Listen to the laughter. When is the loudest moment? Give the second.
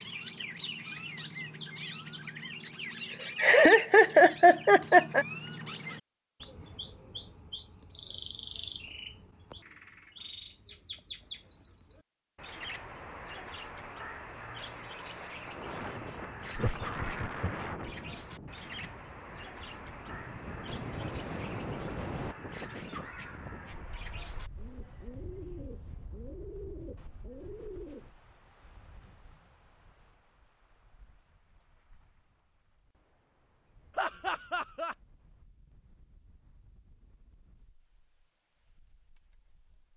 4 s.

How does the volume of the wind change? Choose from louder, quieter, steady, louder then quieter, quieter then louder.
quieter.